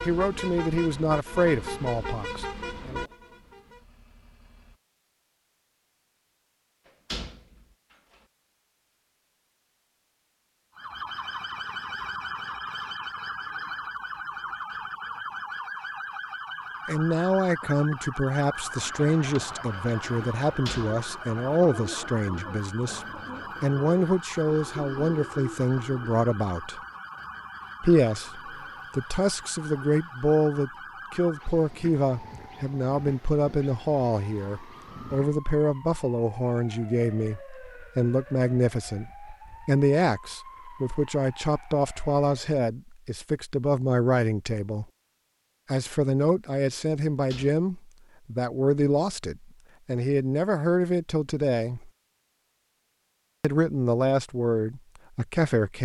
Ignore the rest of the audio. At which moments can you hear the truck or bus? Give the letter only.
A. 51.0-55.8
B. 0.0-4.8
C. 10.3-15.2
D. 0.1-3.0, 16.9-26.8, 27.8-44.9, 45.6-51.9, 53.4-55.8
B.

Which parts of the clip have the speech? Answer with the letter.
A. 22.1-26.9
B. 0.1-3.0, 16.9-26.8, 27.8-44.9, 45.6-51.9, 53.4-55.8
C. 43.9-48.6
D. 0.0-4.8
B.